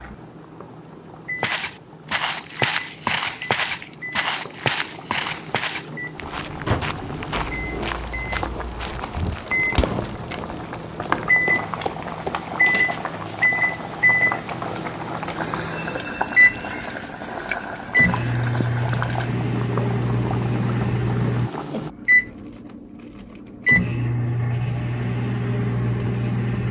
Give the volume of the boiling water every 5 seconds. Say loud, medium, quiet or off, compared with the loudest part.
quiet, loud, loud, loud, loud, off.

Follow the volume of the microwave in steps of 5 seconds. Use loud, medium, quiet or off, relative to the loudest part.
quiet, medium, loud, loud, loud, loud.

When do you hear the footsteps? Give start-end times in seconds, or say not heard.
1.4-13.0.